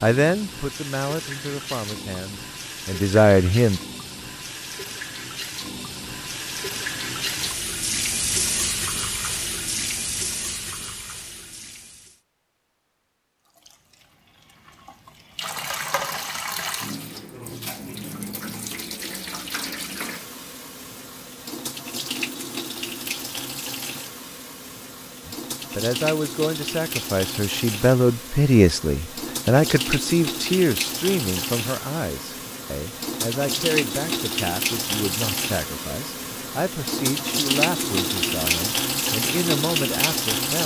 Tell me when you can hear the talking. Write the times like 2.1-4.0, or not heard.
0.0-3.8, 25.2-40.6.